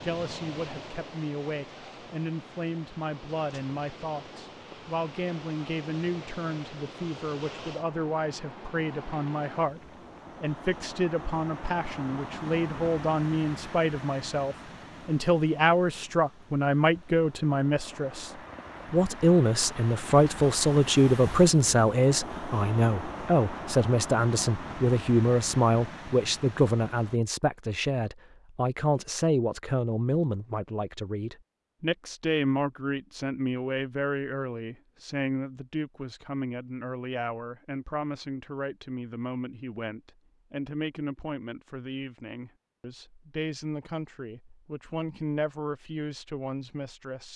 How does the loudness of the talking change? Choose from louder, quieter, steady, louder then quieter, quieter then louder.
louder then quieter.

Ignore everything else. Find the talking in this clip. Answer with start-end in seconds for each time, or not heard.
0.0-18.3, 18.9-47.3.